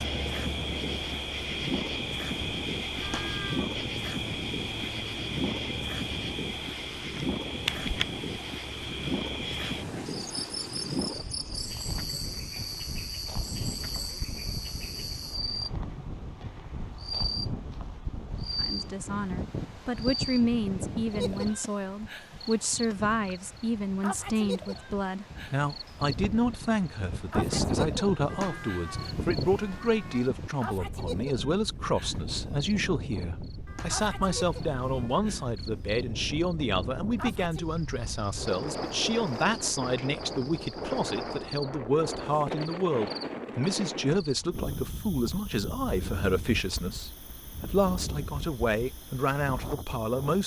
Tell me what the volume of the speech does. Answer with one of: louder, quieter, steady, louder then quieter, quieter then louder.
steady.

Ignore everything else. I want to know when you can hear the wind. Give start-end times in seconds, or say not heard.
0.0-50.4.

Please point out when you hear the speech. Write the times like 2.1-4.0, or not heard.
18.6-50.4.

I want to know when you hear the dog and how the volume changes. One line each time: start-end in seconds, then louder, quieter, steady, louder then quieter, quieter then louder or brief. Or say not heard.
not heard.